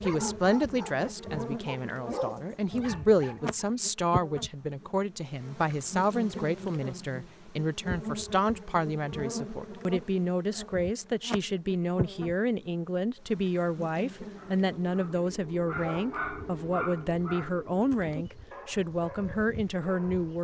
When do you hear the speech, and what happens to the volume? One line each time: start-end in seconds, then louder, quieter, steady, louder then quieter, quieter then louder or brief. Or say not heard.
0.0-20.3 steady.